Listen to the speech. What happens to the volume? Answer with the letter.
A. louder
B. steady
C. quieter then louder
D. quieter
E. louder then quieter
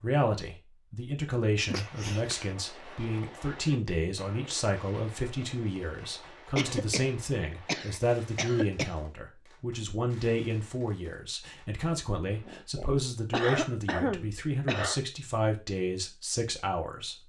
B.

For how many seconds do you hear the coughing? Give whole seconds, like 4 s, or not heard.
6 s.